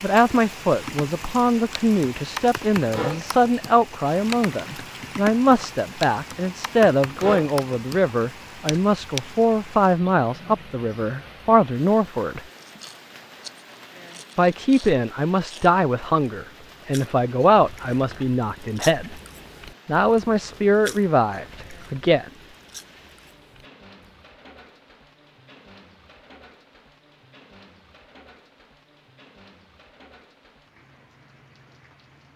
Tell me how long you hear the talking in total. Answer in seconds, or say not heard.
20 s.